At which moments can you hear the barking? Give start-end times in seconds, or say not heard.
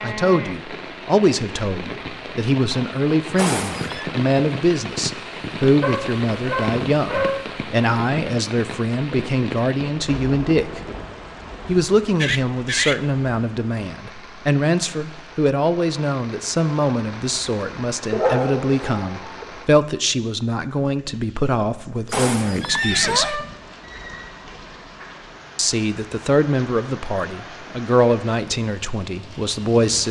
5.8-7.5, 18.1-19.4.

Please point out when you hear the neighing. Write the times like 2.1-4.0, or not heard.
3.4-4.1, 12.2-13.0, 22.1-23.4.